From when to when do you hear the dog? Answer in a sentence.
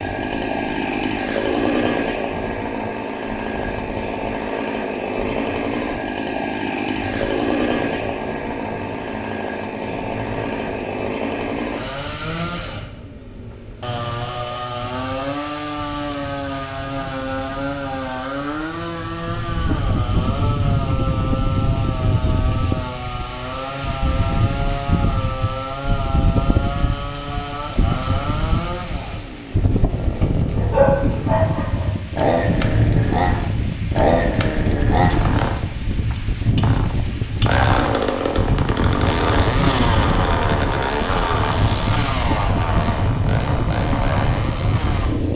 The dog can be heard from 30.6 to 31.9 s.